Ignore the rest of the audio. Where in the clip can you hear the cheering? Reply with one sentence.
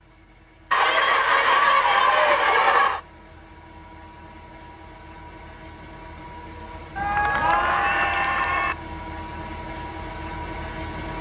You can hear the cheering from 0.7 to 3.0 s and from 7.0 to 8.8 s.